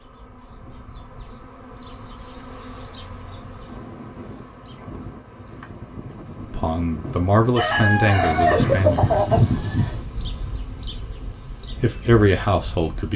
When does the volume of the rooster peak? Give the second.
9 s.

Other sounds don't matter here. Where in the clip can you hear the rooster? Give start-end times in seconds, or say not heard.
7.5-10.0.